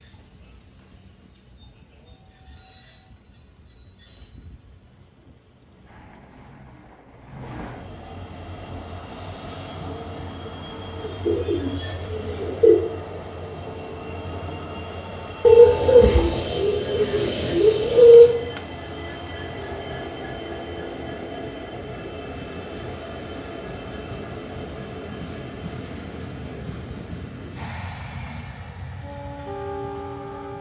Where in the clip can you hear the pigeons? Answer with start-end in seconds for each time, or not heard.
11.0-12.8, 15.4-18.4.